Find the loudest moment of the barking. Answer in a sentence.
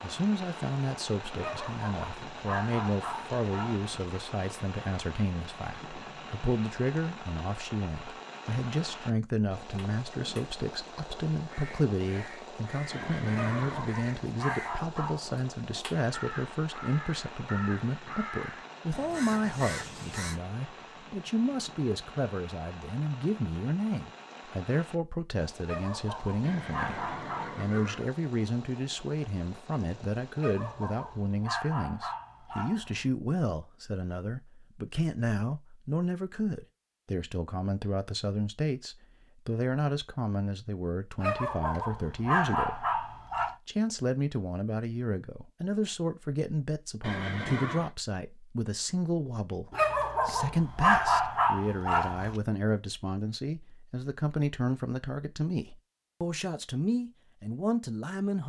The loudest moment of the barking is at 51 seconds.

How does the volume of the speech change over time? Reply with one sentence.
The volume of the speech stays about the same.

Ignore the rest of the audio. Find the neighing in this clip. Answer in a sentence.
The neighing can be heard from 12.9 to 13.9 s, from 26.4 to 28.1 s and from 47.0 to 48.0 s.